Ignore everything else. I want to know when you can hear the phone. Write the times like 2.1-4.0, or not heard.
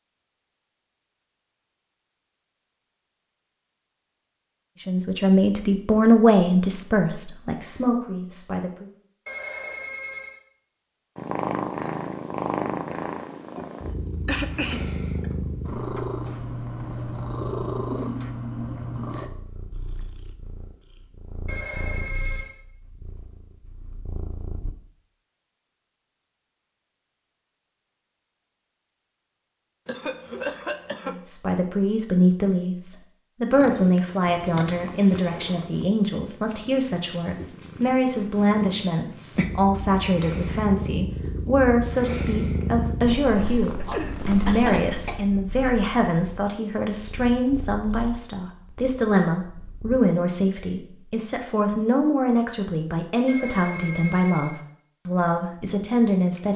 9.2-10.4, 21.4-22.6, 53.2-54.6.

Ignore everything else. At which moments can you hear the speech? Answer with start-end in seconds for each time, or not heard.
4.8-8.8, 31.1-56.5.